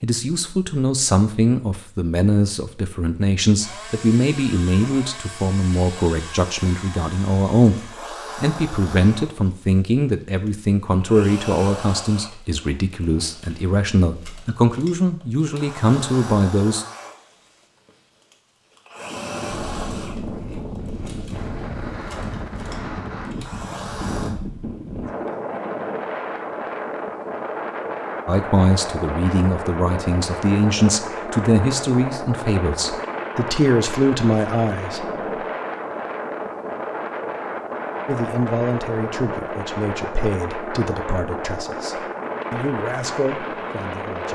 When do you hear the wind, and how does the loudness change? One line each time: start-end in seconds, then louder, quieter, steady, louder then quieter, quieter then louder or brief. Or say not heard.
18.9-44.2 steady.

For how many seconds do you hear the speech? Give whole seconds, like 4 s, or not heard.
30 s.